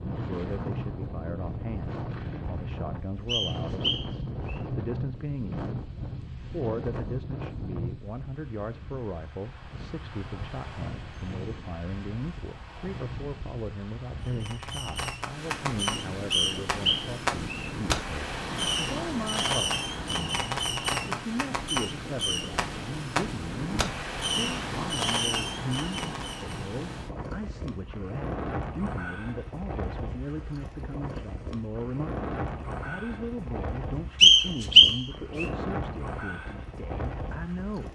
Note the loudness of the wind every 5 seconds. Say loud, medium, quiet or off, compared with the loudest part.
loud, loud, medium, loud, loud, loud, loud, loud.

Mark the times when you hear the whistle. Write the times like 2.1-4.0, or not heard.
3.2-4.5, 16.3-17.7, 34.2-35.5.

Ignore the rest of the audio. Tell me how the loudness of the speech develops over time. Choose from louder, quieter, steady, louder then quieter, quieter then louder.
steady.